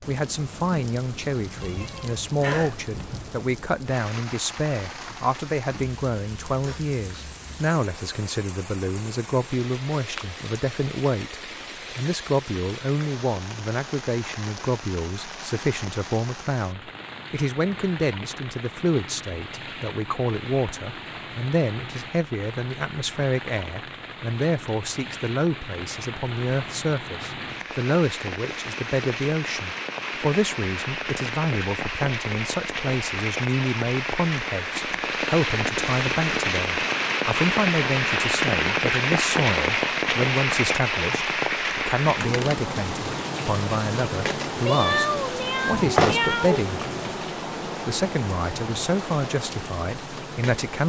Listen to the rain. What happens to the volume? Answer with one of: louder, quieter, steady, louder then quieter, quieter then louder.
louder.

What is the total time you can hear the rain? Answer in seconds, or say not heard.
51 s.